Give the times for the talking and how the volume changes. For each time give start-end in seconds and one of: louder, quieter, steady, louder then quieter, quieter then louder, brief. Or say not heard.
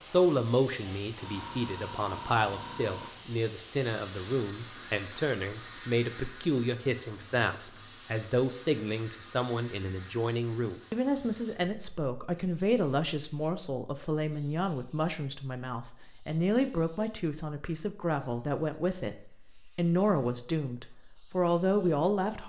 0.0-19.1 steady
19.8-22.4 brief.